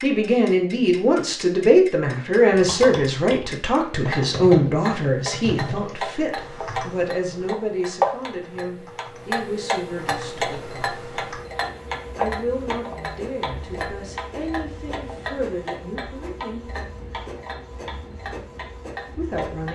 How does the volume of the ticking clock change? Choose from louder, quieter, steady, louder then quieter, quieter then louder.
louder then quieter.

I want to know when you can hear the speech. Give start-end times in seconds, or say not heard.
0.0-10.8, 12.2-16.7, 19.1-19.7.